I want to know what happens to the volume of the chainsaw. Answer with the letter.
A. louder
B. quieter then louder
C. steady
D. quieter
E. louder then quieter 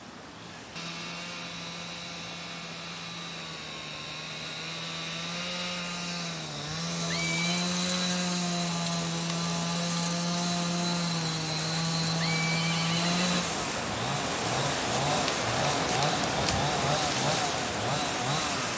A.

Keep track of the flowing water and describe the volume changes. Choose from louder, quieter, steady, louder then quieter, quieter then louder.
louder.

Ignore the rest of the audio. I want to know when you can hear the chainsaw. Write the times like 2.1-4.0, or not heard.
0.0-18.7.